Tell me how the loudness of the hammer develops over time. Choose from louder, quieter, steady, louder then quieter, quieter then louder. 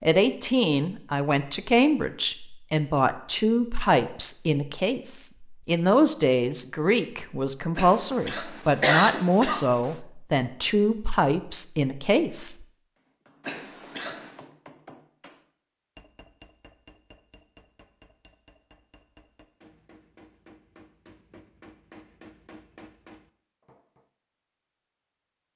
quieter then louder.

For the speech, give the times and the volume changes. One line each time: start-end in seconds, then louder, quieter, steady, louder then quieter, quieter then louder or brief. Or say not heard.
0.0-12.7 steady.